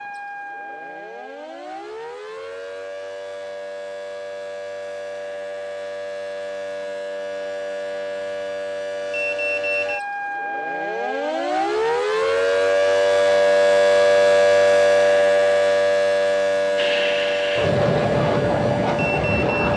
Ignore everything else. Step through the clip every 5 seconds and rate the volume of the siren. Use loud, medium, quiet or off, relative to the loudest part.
quiet, medium, loud, loud.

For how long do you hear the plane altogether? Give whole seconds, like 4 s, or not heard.
3 s.